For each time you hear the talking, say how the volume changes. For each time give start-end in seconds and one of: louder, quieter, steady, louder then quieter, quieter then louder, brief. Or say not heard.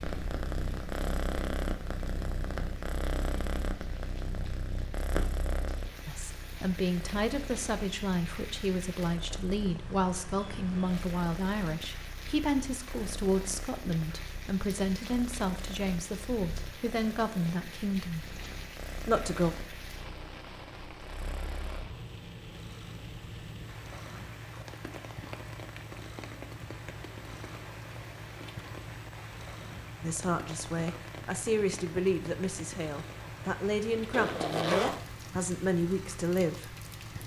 6.0-18.2 steady
19.1-19.6 brief
30.0-36.8 steady.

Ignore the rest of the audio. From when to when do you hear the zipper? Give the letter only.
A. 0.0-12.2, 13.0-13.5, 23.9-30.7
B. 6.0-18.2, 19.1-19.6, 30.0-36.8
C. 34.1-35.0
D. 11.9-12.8
C.